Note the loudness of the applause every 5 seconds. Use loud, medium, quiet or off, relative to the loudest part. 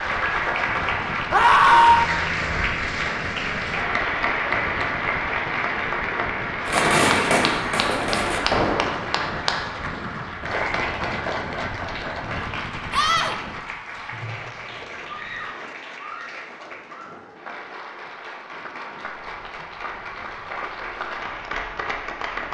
loud, loud, medium, quiet, medium.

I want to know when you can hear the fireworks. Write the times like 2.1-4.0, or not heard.
6.7-9.3.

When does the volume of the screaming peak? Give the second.
2 s.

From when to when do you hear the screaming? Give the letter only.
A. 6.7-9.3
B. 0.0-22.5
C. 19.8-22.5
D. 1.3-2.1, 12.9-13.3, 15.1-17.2
D.